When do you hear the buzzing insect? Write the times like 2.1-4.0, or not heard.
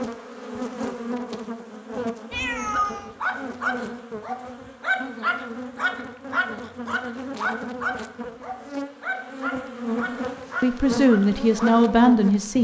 0.0-12.5.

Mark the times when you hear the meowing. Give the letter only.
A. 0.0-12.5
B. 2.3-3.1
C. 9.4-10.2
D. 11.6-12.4
B.